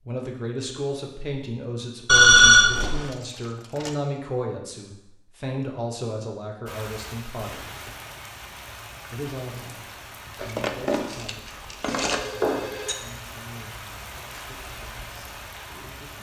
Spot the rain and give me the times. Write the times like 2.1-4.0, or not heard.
6.7-16.1.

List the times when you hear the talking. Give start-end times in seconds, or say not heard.
0.1-7.7, 9.1-16.1.